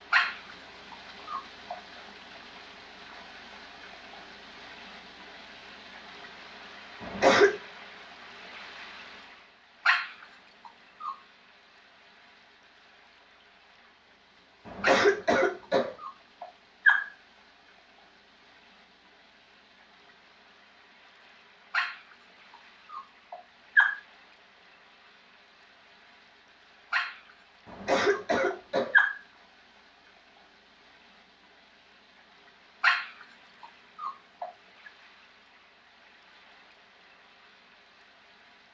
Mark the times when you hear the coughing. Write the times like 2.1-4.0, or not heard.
7.0-7.5, 14.7-15.9, 27.6-28.9.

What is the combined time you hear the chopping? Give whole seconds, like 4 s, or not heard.
not heard.